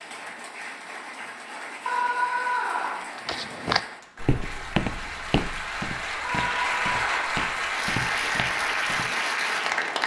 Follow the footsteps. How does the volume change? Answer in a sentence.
The volume of the footsteps goes down.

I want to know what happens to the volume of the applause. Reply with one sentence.
The volume of the applause goes up.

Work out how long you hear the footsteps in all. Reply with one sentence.
The footsteps can be heard for 6 seconds in total.